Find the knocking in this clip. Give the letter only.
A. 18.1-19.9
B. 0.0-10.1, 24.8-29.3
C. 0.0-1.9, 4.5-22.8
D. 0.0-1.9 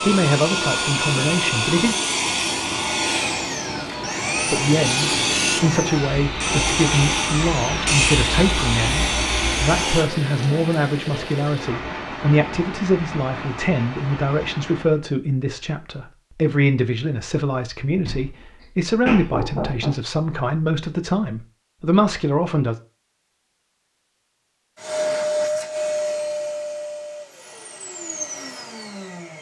A.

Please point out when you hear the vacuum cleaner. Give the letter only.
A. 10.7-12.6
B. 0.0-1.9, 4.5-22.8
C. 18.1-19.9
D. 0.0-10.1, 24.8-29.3
D.